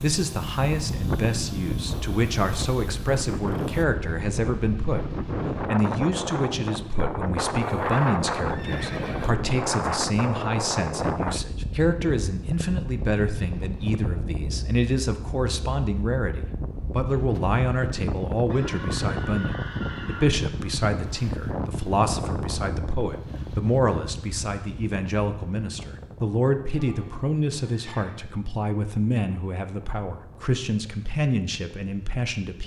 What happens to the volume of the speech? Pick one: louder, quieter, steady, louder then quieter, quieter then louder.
steady.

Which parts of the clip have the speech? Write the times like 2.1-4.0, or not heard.
0.0-32.6.